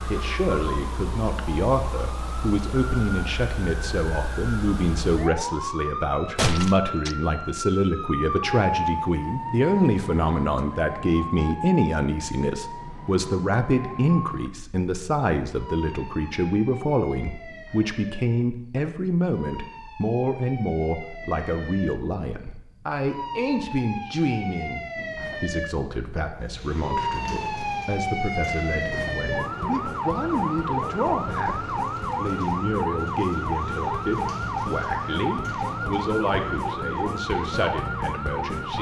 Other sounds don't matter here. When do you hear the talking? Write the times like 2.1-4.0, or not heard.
0.1-38.7.